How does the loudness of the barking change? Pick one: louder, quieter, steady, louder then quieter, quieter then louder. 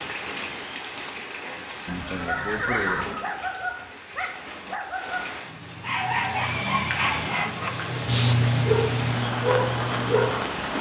louder.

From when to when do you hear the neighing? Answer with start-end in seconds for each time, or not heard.
1.9-3.2, 6.3-8.3.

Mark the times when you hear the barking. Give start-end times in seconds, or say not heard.
2.1-10.3.